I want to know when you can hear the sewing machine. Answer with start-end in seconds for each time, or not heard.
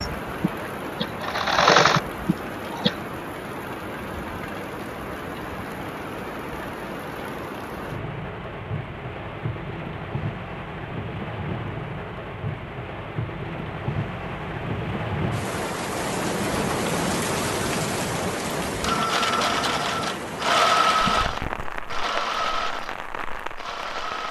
0.0-3.0, 18.6-24.2.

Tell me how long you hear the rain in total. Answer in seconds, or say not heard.
24 s.